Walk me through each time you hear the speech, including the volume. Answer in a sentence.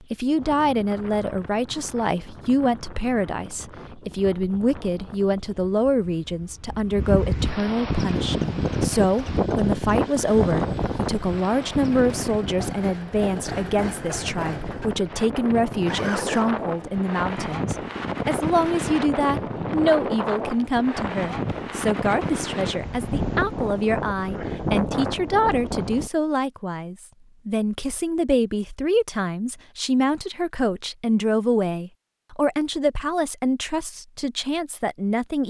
The speech can be heard from 0.1 to 35.4 s, at a steady volume.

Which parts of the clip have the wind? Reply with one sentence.
The wind can be heard from 0.0 to 26.1 s.